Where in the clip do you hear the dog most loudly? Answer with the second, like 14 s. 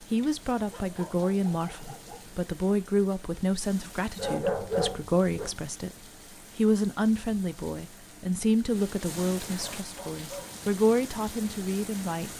5 s.